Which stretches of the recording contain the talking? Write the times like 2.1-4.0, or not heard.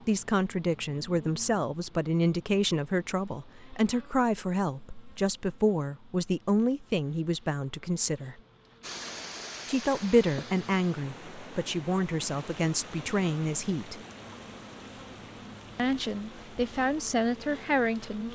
0.1-8.4, 9.7-14.0, 15.8-18.3.